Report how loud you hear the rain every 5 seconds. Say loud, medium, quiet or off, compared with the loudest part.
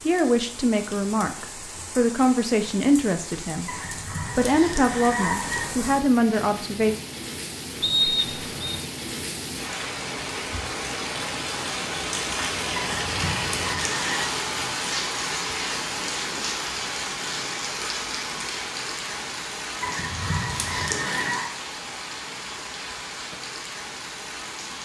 medium, medium, loud, loud, medium.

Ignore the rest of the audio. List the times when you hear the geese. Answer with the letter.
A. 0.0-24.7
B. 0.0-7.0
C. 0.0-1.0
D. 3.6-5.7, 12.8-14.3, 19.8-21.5
D.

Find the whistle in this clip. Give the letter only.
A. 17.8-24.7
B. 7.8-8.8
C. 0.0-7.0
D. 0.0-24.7
B.